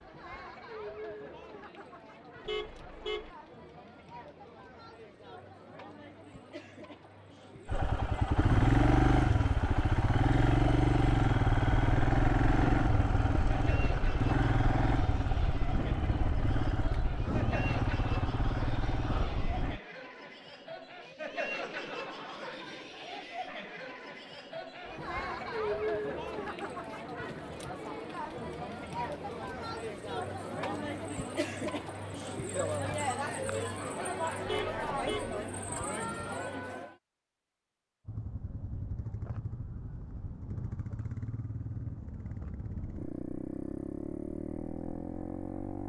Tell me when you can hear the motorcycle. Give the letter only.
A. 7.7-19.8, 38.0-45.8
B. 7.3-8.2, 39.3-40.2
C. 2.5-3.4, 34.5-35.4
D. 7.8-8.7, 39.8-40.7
A.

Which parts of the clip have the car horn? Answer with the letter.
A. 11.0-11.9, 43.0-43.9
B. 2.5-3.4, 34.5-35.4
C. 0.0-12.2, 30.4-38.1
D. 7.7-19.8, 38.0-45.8
B.